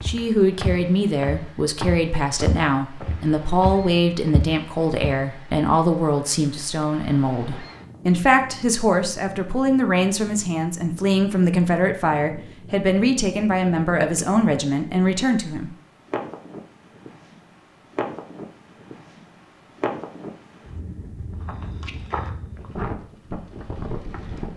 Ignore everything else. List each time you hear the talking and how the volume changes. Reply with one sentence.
The talking can be heard from 0.0 to 15.8 s, at a steady volume.